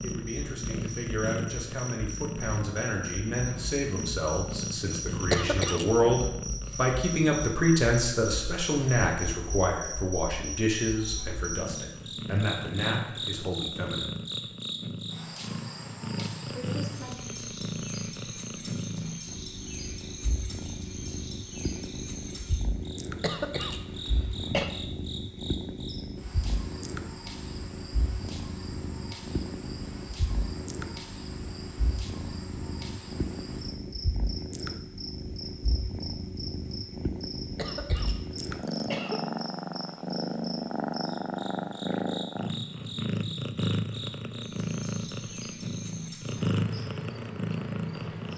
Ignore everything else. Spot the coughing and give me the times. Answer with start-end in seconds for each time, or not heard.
5.3-5.8, 23.2-24.7, 37.5-39.2.